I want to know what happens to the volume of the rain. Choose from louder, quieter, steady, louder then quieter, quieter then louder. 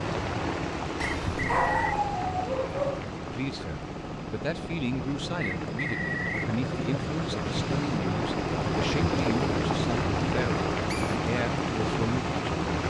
quieter then louder.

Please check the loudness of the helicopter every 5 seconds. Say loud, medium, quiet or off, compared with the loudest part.
medium, loud, loud.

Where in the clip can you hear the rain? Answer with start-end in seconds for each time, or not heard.
0.0-12.8.